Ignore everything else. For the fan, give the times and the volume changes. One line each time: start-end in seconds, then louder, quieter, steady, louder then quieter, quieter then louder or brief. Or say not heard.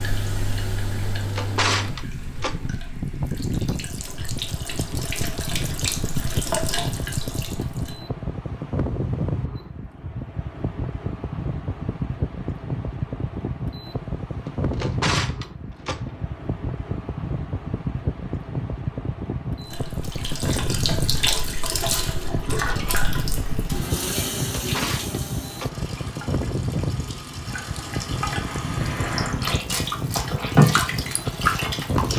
0.0-32.1 steady.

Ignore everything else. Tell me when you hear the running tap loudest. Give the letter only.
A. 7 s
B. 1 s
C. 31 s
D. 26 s
C.